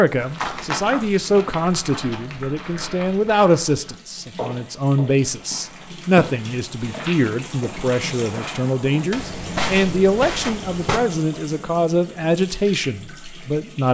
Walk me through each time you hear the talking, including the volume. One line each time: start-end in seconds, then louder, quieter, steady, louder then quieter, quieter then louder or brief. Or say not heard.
0.0-13.8 steady.